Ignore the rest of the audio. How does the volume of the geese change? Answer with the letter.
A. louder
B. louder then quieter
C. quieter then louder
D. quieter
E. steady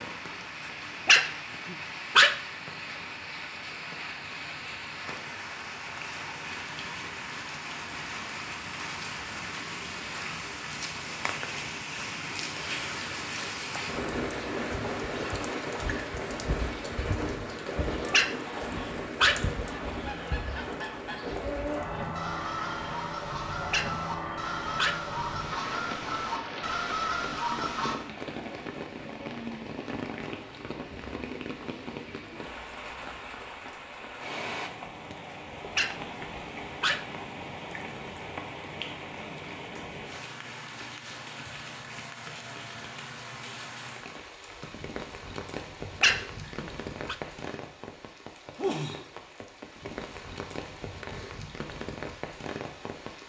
A.